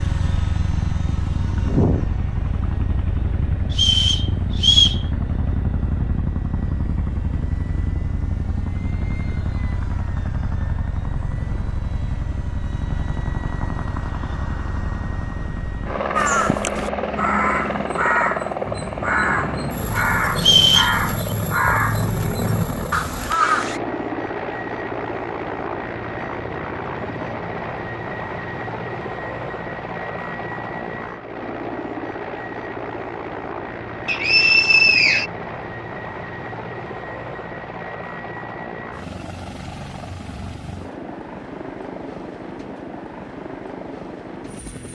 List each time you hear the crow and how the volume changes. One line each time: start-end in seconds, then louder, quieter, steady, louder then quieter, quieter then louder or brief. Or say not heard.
16.1-23.8 steady.